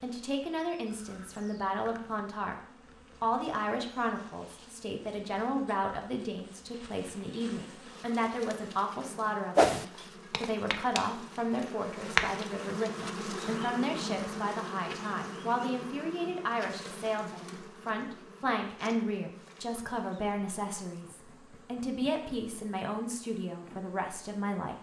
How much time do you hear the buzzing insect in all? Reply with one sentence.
The buzzing insect can be heard for 25 seconds in total.